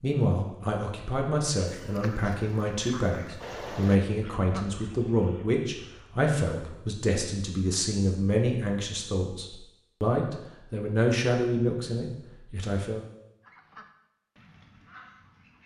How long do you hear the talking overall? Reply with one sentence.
The talking can be heard for 13 seconds in total.